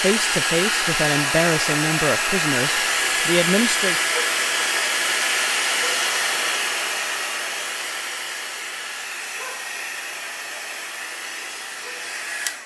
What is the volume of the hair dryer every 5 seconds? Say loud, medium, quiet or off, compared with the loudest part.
loud, loud, medium.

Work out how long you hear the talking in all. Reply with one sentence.
You can hear the talking for 4 seconds altogether.